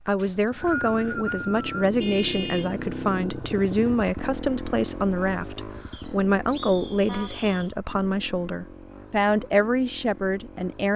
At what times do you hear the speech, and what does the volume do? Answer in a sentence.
The speech can be heard from 0.1 to 10.9 s, at a steady volume.